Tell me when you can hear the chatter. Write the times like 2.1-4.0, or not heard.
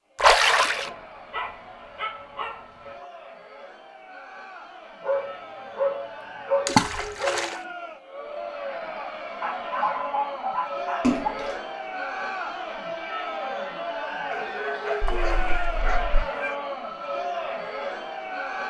0.0-18.6.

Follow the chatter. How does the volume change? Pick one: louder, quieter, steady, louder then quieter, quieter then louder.
louder.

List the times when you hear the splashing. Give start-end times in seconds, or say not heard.
0.2-0.9, 6.7-7.5, 11.0-11.6, 15.0-16.2.